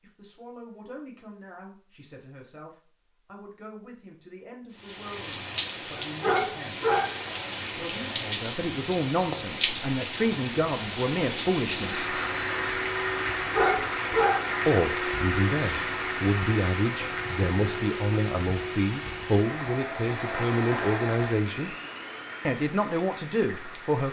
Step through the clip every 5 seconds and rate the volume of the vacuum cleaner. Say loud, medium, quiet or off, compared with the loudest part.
off, off, loud, loud, loud.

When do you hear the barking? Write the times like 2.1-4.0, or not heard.
6.0-7.2, 13.5-14.5.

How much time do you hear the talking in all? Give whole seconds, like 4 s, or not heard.
20 s.